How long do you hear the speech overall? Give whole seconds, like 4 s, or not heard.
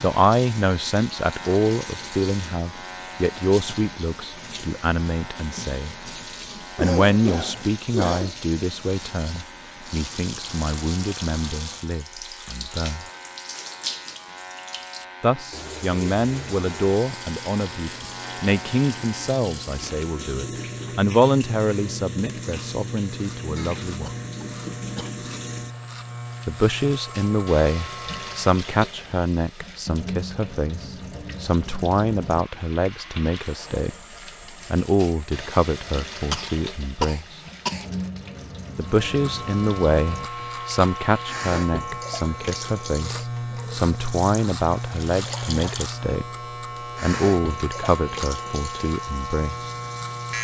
42 s.